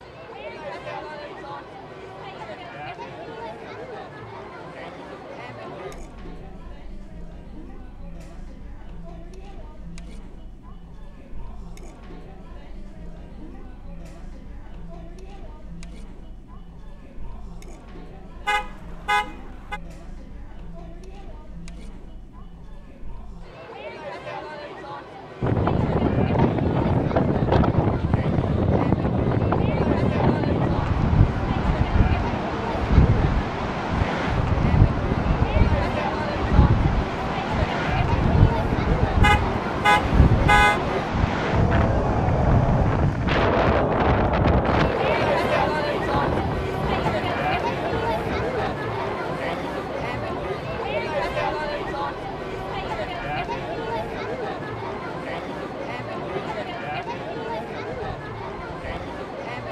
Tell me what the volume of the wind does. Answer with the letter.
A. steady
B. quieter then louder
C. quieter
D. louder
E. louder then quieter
C.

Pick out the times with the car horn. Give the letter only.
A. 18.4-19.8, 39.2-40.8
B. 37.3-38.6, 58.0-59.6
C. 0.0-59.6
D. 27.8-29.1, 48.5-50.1
A.